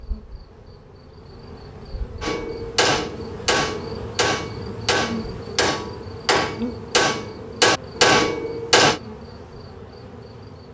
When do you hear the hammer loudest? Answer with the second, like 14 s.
8 s.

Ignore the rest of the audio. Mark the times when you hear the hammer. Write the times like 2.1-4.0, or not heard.
2.2-9.0.